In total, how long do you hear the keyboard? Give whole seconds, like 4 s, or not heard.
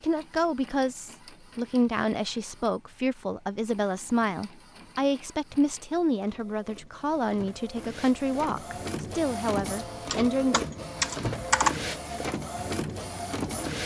2 s.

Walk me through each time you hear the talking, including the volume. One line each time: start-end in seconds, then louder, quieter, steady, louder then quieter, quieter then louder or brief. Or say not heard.
0.0-10.7 steady.